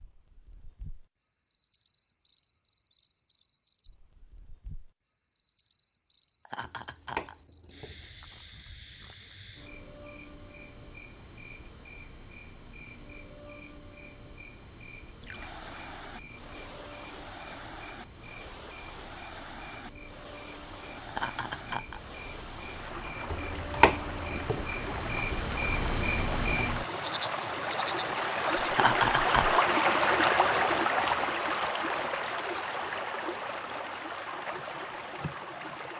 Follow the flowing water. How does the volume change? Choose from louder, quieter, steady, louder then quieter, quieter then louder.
louder then quieter.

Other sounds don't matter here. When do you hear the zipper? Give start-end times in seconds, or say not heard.
not heard.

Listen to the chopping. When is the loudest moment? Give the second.
24 s.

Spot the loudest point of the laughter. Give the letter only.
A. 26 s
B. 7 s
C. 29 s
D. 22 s
C.